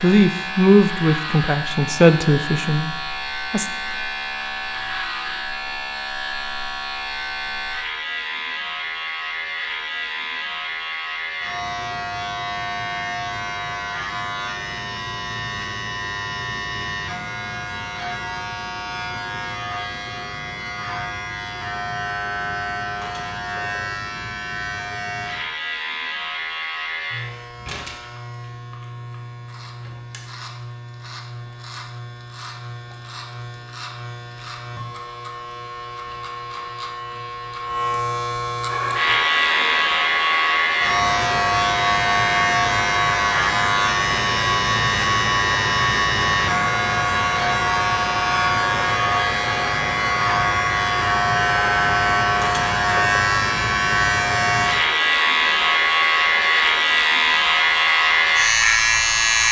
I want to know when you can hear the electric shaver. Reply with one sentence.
You can hear the electric shaver from 0.0 to 59.4 s.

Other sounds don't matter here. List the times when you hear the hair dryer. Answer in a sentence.
You can hear the hair dryer from 38.6 to 59.4 s.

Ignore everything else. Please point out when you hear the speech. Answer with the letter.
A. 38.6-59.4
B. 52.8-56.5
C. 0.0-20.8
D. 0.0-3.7
D.